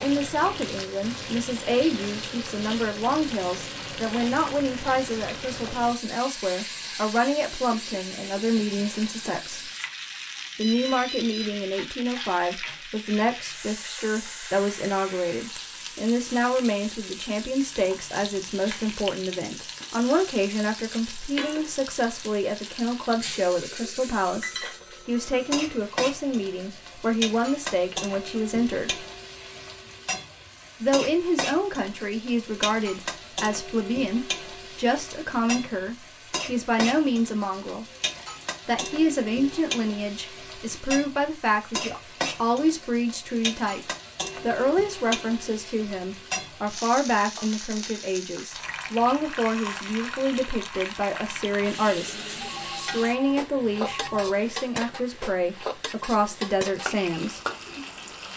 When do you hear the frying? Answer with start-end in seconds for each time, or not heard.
0.0-58.3.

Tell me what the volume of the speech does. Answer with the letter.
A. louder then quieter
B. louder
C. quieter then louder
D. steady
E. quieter
D.